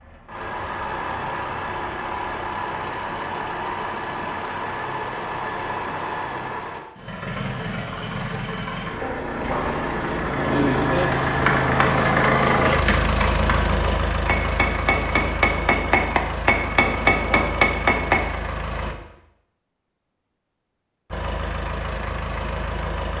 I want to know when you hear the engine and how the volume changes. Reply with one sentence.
You can hear the engine from 0.0 to 18.9 s, getting louder then quieter; and briefly from 21.1 to 23.1 s.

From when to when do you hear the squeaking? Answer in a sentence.
You can hear the squeaking from 8.9 to 9.7 s and from 16.8 to 17.5 s.